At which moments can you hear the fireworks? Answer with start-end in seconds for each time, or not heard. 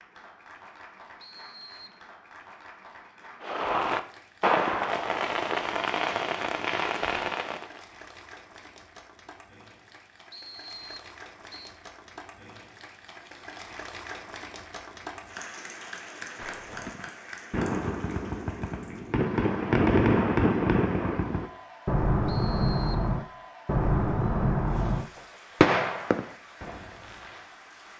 3.4-7.8, 16.4-27.4.